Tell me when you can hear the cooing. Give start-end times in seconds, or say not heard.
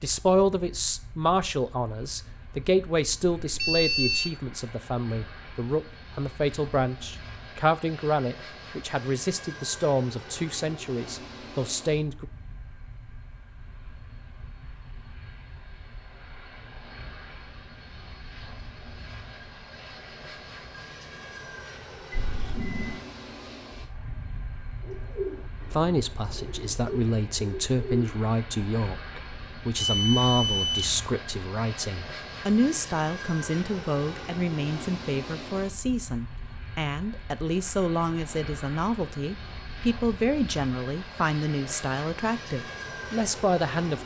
24.8-28.2.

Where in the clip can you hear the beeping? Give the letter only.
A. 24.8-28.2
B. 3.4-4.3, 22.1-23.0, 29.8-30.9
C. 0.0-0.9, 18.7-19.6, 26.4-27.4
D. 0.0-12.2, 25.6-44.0
B.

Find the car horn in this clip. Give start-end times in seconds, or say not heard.
not heard.